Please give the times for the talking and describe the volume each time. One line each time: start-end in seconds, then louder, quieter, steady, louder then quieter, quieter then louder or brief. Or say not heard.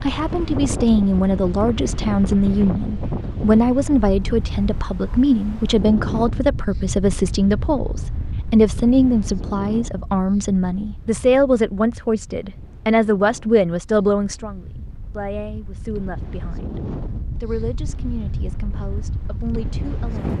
0.0-16.8 steady
17.4-20.3 brief.